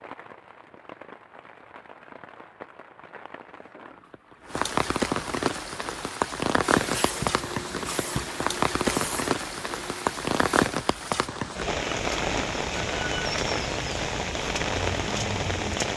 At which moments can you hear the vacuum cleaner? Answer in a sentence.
The vacuum cleaner can be heard from 6.7 to 10.7 s.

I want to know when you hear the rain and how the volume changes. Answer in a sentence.
The rain can be heard from 0.0 to 15.9 s, getting louder.